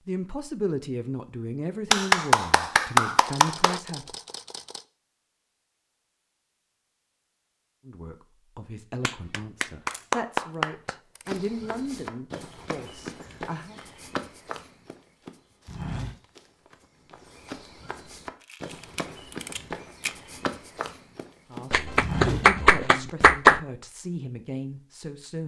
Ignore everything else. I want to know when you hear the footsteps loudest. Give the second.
22 s.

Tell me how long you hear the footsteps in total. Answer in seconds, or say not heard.
11 s.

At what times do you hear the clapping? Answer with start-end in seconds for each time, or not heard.
1.9-3.8, 9.0-10.9, 21.7-23.6.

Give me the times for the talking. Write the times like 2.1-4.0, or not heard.
0.1-4.2, 7.8-13.8, 21.5-25.4.